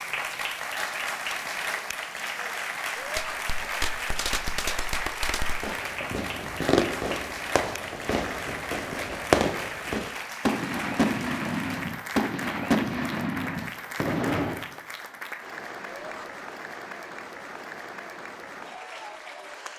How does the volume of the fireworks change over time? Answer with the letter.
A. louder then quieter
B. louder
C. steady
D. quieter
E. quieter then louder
B.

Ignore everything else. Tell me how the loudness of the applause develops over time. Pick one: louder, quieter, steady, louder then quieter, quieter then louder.
quieter.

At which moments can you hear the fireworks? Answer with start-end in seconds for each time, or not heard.
3.1-14.7.